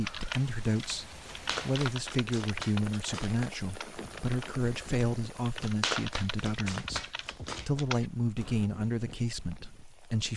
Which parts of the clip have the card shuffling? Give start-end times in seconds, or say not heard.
1.3-3.5, 5.5-7.8.